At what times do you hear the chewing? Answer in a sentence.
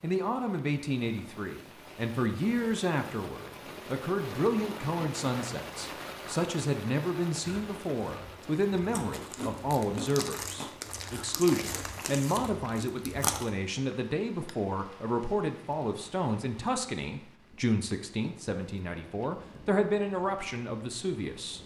The chewing can be heard from 7.4 to 13.5 s.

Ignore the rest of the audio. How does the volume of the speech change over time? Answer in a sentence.
The loudness of the speech stays about the same.